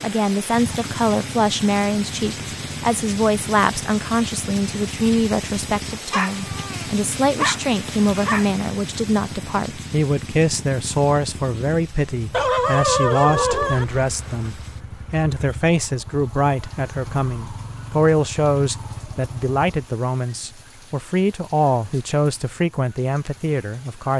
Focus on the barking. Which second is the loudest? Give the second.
13 s.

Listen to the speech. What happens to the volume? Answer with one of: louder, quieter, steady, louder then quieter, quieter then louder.
steady.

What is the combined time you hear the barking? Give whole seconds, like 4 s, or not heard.
4 s.